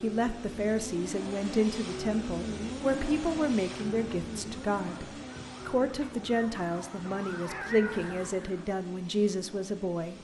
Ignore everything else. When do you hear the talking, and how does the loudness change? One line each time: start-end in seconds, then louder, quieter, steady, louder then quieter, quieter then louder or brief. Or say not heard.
0.0-10.1 steady.